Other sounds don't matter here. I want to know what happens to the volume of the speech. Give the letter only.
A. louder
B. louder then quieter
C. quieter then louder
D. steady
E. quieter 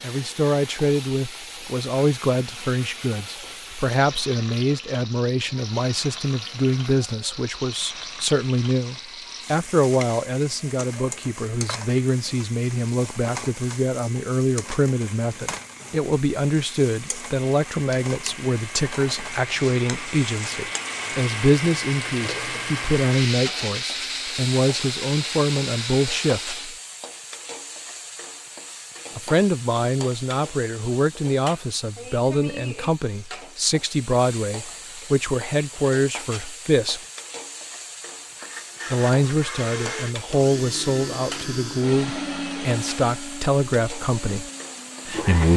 D.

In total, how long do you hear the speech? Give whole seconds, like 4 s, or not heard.
41 s.